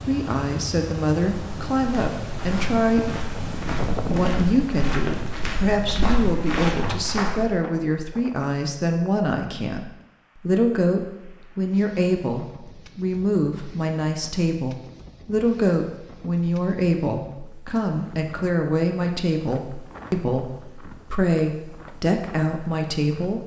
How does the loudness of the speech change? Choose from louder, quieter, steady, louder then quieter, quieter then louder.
steady.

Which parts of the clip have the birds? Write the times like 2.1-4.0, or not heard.
not heard.